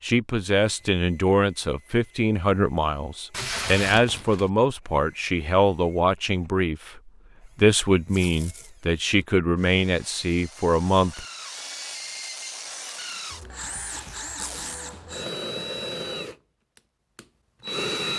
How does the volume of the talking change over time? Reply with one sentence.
The loudness of the talking stays about the same.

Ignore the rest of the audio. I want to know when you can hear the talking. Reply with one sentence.
You can hear the talking from 0.0 to 11.2 s.